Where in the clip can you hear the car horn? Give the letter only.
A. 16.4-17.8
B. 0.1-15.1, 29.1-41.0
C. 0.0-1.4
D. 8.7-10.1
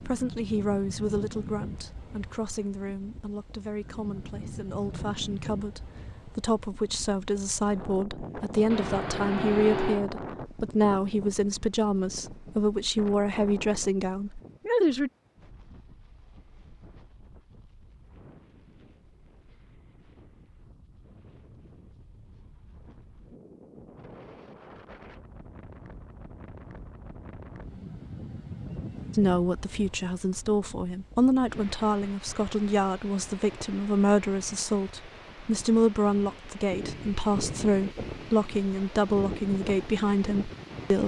D.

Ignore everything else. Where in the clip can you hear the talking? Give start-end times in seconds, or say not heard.
0.1-15.1, 29.1-41.0.